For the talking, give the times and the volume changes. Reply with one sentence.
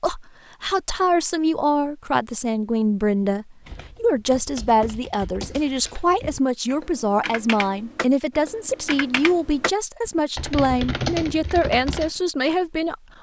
The talking can be heard from 0.0 to 13.1 s, at a steady volume.